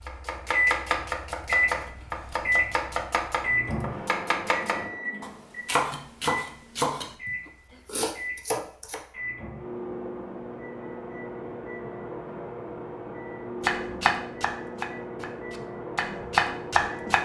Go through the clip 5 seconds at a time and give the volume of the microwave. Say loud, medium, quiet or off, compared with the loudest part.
loud, medium, medium, medium.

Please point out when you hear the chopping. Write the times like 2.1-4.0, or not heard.
0.1-9.1, 13.6-17.1.